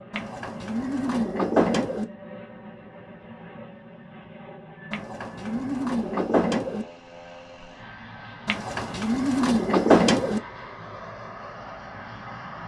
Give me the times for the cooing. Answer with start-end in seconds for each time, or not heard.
0.1-2.0, 4.9-6.8, 8.4-10.4.